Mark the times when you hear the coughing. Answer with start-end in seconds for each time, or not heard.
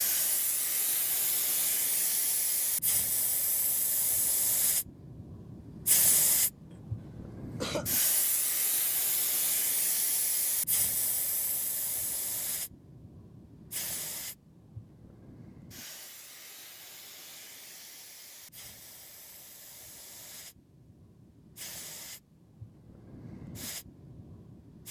6.7-8.0.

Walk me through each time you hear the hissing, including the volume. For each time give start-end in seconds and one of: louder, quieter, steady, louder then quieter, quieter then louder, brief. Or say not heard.
0.0-24.8 quieter.